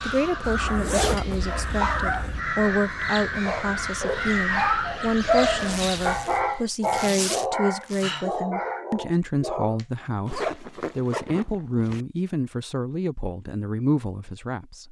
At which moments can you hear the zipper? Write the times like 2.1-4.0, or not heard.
0.4-2.5, 5.5-8.1, 10.2-12.1.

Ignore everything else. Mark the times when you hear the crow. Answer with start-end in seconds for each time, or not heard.
0.0-6.6.